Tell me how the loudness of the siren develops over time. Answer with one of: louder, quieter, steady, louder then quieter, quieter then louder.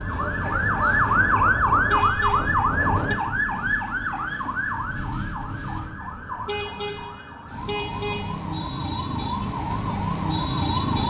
quieter then louder.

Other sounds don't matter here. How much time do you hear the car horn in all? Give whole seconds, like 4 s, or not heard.
3 s.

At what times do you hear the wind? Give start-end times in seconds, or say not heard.
0.0-7.0.